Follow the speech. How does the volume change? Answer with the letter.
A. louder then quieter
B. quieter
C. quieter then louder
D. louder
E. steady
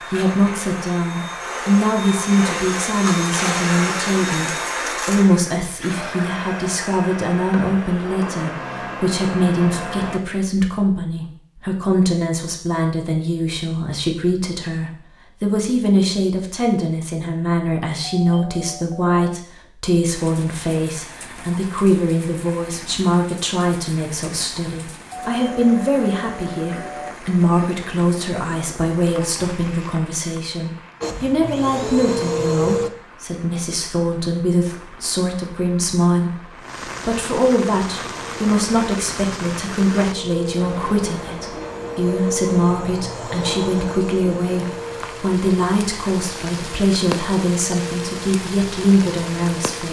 E.